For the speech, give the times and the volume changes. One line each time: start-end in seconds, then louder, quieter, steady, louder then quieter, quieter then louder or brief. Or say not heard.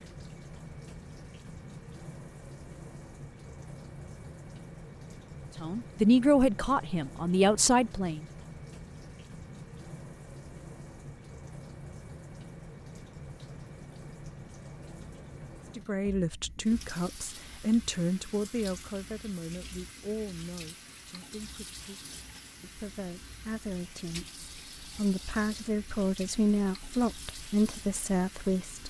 5.6-8.2 brief
15.8-28.8 quieter then louder.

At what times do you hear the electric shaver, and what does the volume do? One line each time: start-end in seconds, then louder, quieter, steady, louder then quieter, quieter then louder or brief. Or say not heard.
not heard.